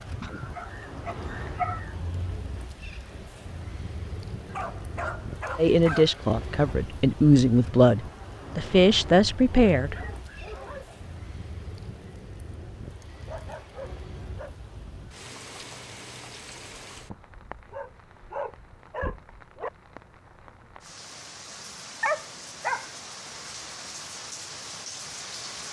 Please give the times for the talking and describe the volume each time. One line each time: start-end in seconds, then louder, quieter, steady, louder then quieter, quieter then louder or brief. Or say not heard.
5.5-9.9 steady.